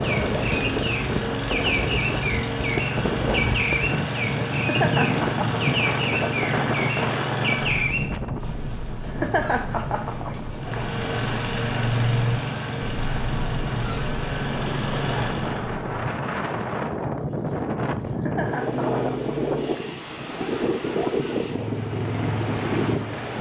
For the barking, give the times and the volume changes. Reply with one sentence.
You can't hear the barking here.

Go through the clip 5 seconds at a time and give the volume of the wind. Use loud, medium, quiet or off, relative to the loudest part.
loud, loud, medium, loud, loud.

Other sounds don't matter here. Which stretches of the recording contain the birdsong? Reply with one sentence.
The birdsong can be heard from 0.0 to 16.1 s.